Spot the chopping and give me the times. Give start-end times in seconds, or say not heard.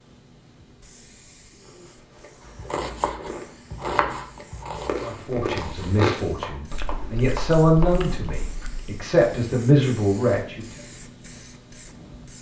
2.5-8.3.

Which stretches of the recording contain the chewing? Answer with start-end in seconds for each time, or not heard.
1.6-9.1.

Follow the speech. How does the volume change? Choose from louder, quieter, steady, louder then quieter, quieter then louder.
louder.